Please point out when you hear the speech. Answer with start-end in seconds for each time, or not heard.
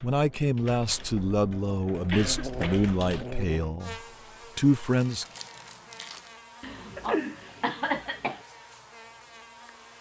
0.0-5.2.